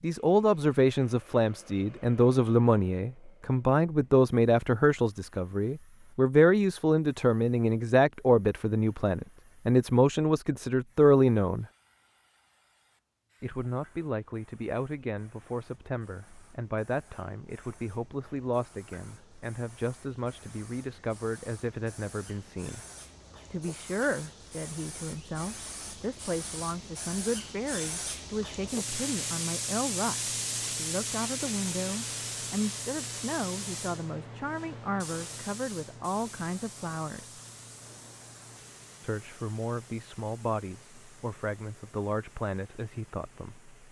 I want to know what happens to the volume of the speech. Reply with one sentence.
The loudness of the speech goes down.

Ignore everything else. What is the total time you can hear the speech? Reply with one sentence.
The speech can be heard for 40 seconds in total.